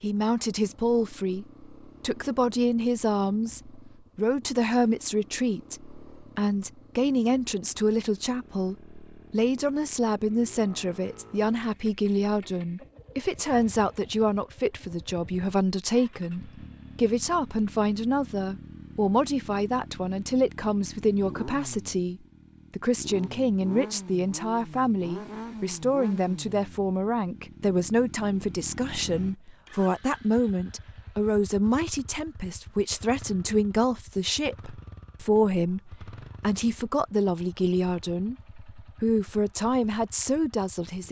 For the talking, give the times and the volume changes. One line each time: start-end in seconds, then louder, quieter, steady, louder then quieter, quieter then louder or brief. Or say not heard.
0.0-41.0 steady.